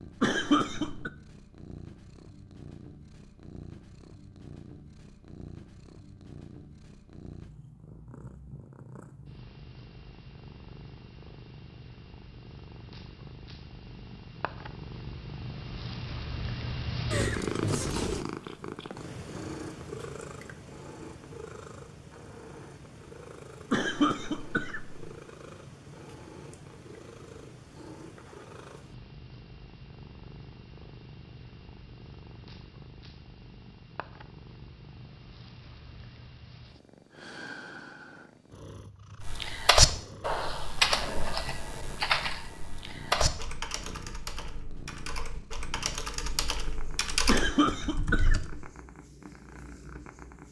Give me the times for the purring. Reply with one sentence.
The purring can be heard from 0.0 to 50.4 s.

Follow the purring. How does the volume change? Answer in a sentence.
The loudness of the purring goes up, then down.